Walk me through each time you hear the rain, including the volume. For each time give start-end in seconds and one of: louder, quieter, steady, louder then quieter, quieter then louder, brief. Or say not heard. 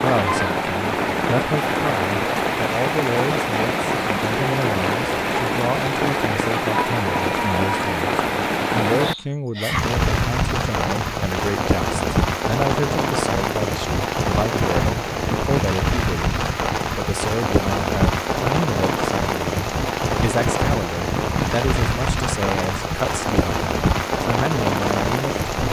0.0-25.6 steady.